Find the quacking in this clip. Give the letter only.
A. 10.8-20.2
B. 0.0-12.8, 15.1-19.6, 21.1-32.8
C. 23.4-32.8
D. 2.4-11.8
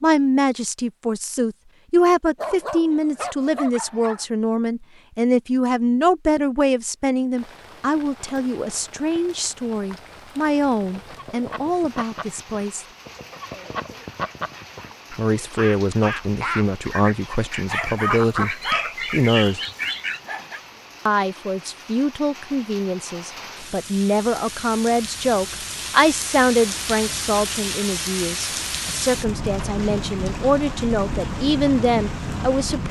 A.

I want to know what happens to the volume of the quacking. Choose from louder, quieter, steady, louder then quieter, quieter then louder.
louder.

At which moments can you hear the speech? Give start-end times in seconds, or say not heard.
0.0-12.8, 15.1-19.6, 21.1-32.8.